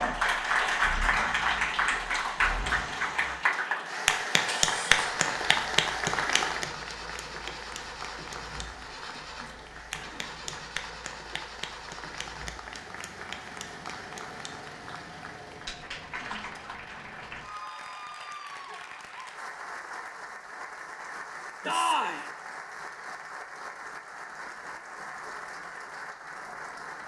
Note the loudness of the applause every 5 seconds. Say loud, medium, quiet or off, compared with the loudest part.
loud, medium, quiet, quiet, quiet, quiet.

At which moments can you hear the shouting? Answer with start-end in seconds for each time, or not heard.
21.6-22.2.